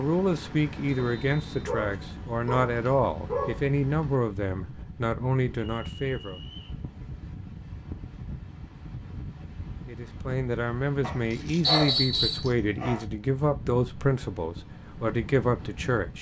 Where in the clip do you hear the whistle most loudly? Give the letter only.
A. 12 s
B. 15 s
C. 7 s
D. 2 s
A.